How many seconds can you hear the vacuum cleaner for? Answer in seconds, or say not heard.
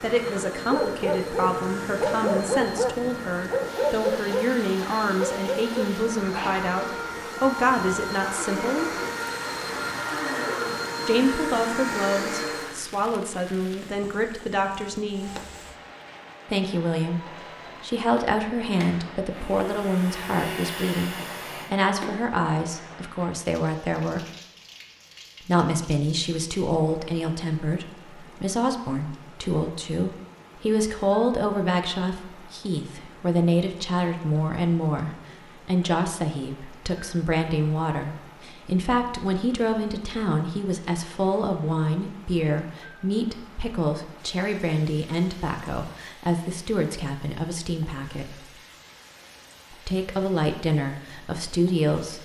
20 s.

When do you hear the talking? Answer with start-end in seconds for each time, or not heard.
0.0-8.9, 11.1-15.3, 16.4-24.2, 25.4-48.5, 49.7-52.2.